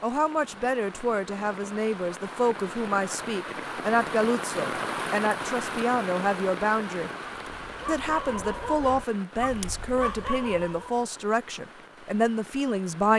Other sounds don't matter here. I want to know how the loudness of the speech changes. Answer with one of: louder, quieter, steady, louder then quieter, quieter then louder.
steady.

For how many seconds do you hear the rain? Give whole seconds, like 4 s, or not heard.
13 s.